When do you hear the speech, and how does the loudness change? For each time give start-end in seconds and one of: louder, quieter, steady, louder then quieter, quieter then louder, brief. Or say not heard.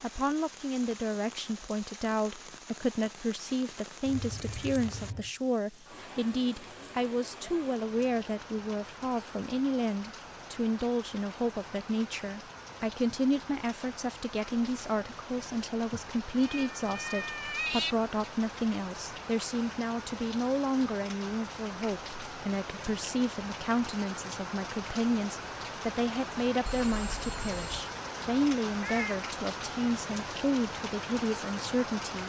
0.0-32.2 steady.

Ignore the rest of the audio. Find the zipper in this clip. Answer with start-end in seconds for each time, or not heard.
not heard.